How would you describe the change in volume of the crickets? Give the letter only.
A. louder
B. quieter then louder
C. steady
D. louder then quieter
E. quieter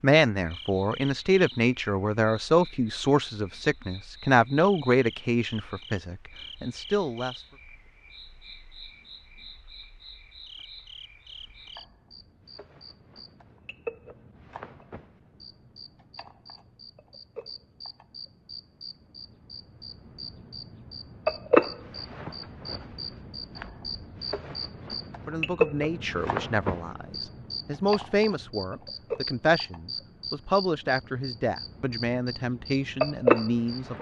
A.